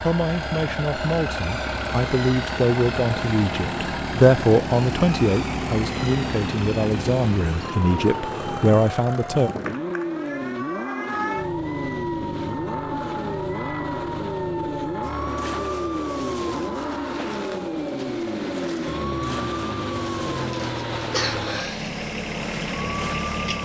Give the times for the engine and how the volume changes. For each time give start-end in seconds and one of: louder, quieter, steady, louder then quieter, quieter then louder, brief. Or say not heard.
0.0-23.6 steady.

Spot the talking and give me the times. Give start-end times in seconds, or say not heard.
0.0-9.5.